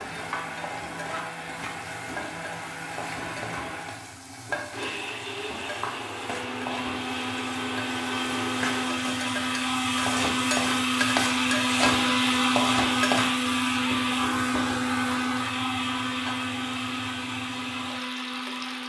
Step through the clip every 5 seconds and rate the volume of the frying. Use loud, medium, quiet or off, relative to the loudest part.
medium, medium, loud, medium.